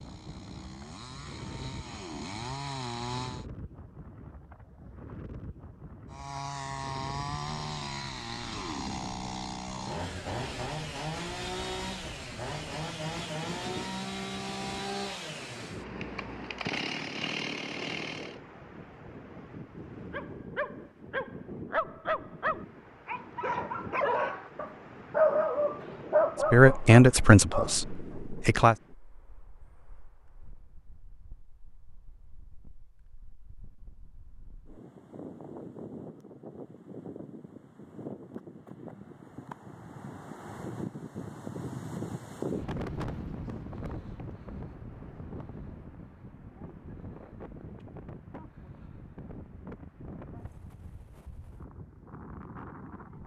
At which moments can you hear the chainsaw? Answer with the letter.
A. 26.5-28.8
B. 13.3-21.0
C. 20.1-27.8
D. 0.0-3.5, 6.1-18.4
D.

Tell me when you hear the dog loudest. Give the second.
25 s.